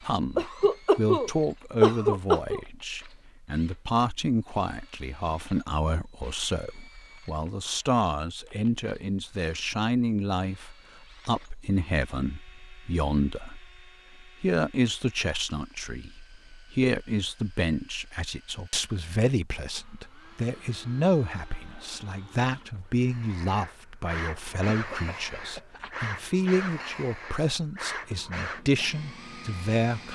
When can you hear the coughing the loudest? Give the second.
2 s.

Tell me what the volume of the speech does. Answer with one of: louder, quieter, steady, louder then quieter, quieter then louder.
steady.